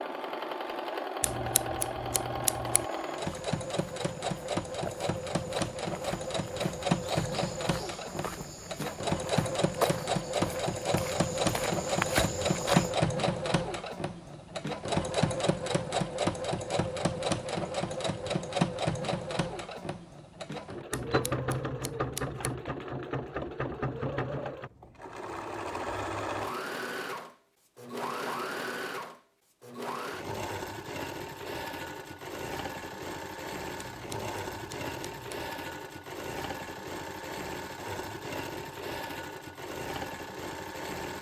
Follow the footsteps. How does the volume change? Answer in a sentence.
The loudness of the footsteps goes up.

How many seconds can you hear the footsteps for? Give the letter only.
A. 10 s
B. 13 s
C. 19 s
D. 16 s
A.